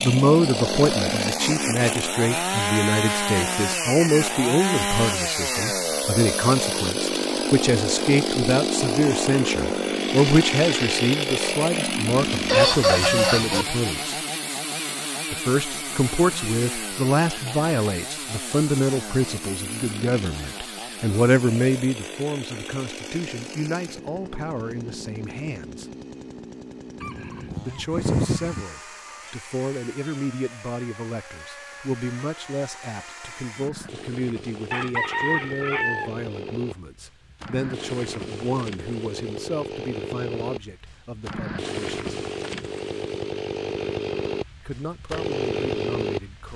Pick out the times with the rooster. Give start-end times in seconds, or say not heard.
12.3-13.7, 27.0-28.6, 34.7-36.5.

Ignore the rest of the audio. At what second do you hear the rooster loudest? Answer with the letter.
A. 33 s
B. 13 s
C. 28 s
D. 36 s
B.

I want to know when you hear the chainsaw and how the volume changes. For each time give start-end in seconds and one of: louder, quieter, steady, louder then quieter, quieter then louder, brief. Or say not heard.
0.0-46.5 quieter then louder.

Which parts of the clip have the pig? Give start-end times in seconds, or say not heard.
not heard.